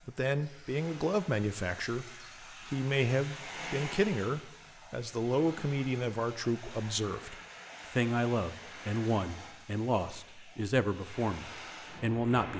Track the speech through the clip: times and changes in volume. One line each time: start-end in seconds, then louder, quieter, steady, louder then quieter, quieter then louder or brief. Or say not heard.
0.1-12.5 steady.